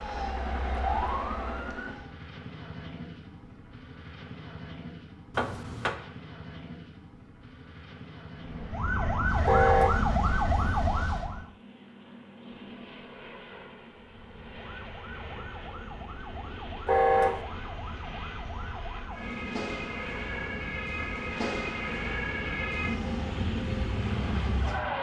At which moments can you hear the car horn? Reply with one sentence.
The car horn can be heard from 5.3 to 6.0 s, from 9.4 to 10.0 s and from 16.9 to 17.4 s.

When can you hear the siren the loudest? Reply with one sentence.
The loudest moment of the siren is at 10 seconds.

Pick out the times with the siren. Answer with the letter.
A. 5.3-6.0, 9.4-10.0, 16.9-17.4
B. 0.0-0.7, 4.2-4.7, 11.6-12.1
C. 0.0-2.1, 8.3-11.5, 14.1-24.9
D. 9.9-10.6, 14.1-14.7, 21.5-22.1
C.